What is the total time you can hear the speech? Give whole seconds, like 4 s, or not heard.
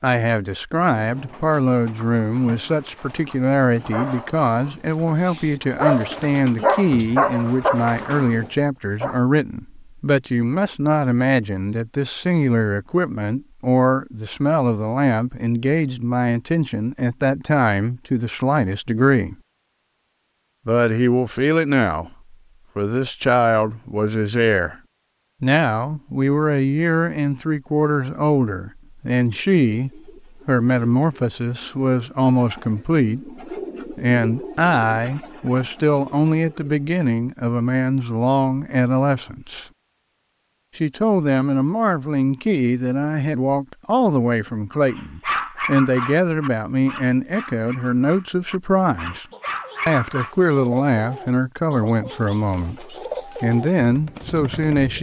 51 s.